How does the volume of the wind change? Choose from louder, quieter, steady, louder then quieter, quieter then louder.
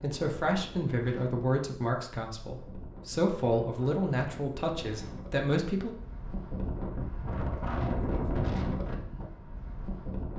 louder.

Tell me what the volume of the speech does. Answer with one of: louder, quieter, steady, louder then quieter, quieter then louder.
steady.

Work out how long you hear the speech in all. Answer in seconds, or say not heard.
6 s.